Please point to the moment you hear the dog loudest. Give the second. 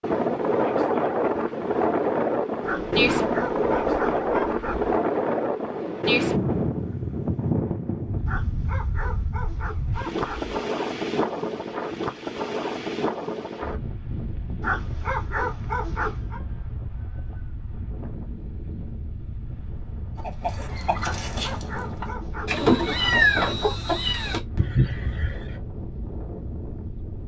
15 s.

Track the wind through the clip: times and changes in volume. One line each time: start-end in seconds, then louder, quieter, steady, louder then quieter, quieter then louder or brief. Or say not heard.
0.0-27.2 quieter.